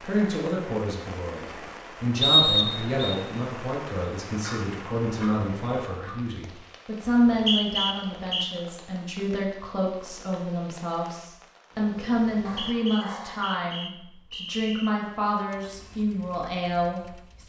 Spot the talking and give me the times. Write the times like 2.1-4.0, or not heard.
0.0-17.4.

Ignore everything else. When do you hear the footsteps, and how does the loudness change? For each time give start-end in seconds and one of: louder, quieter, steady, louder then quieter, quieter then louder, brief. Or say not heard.
not heard.